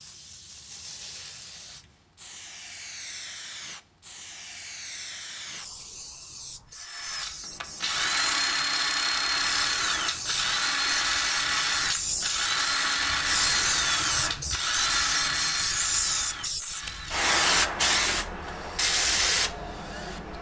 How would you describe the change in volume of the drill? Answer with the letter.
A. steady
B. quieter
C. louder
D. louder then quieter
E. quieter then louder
B.